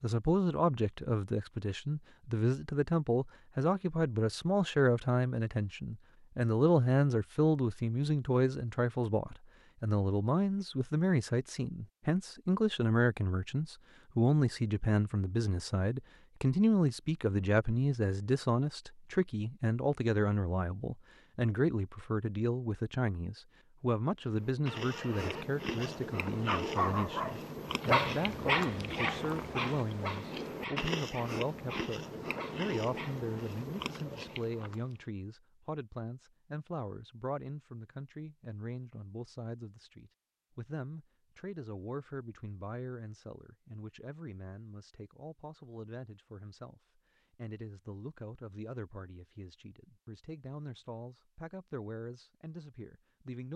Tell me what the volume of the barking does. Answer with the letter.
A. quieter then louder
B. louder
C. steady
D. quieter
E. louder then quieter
E.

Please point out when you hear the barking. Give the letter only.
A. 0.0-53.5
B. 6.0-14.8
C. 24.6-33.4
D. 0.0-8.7
C.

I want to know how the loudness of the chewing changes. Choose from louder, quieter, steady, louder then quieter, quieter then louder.
steady.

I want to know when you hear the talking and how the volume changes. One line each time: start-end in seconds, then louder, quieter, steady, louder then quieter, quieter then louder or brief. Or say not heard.
0.0-53.5 quieter.